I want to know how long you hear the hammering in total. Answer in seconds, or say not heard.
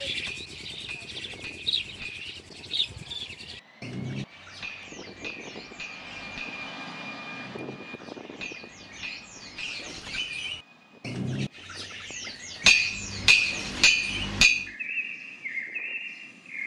8 s.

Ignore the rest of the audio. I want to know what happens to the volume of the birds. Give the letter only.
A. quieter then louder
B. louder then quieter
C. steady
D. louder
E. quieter
A.